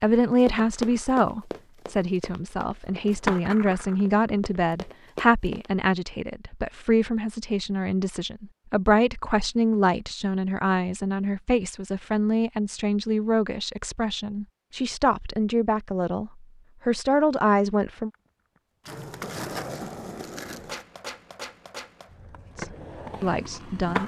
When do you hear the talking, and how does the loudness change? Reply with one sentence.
The talking can be heard from 0.0 to 18.1 s, at a steady volume; and briefly from 22.6 to 24.0 s.